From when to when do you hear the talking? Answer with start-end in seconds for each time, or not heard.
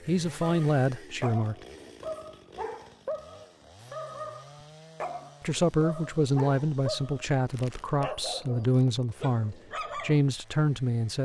0.1-1.6, 5.4-11.2.